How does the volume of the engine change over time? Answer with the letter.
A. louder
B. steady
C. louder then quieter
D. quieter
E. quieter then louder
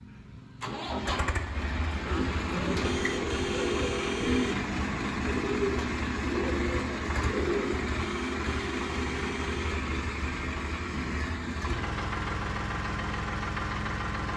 B.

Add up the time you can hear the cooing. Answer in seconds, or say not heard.
6 s.